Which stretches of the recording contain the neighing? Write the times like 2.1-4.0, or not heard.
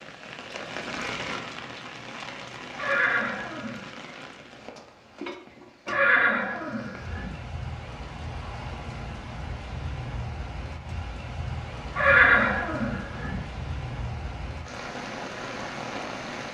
2.8-3.9, 5.8-7.4, 11.9-13.4.